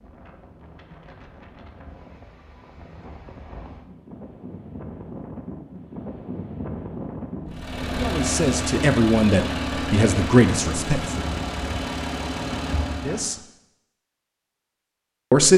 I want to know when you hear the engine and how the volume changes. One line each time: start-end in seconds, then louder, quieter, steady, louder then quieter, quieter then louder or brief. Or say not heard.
7.5-13.3 steady.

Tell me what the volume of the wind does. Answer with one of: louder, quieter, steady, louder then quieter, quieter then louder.
louder.